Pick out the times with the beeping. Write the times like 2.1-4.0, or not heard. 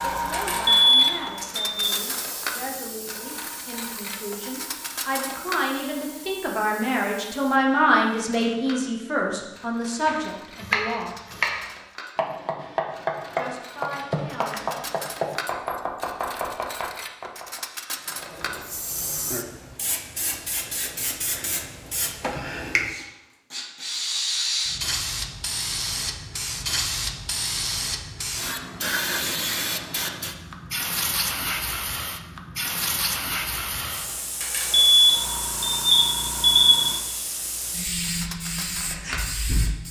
0.3-1.9, 34.4-36.9.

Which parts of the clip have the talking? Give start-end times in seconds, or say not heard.
0.0-11.1, 13.3-14.8.